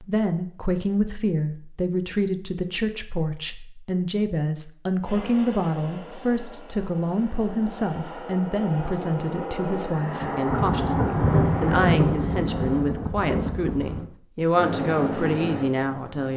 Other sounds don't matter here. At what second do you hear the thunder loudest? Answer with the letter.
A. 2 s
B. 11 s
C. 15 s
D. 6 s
B.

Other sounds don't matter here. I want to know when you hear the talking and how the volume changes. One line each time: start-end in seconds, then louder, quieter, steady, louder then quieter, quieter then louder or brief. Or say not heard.
0.0-16.3 steady.